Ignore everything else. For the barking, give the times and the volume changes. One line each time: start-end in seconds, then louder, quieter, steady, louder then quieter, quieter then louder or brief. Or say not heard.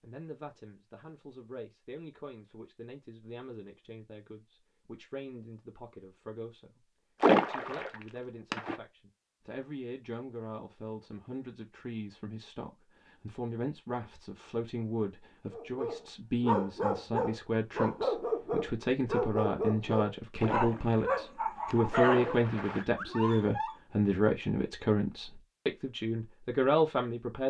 15.5-23.8 steady.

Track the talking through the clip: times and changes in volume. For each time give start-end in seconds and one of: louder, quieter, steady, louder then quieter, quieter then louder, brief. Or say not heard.
0.0-27.4 louder.